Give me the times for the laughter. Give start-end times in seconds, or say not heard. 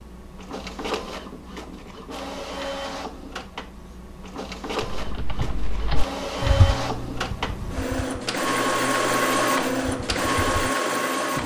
not heard.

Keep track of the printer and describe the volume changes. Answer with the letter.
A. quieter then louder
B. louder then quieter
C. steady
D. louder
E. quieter
D.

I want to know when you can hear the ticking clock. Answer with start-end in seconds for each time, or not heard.
not heard.